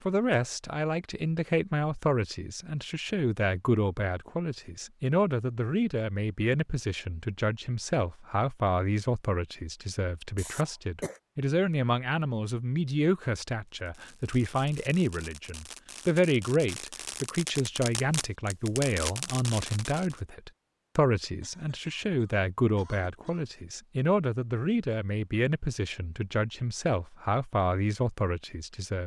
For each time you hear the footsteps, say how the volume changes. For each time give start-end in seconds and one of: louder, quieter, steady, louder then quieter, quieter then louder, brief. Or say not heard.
not heard.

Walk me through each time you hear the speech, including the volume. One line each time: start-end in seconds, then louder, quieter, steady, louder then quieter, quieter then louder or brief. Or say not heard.
0.1-29.0 steady.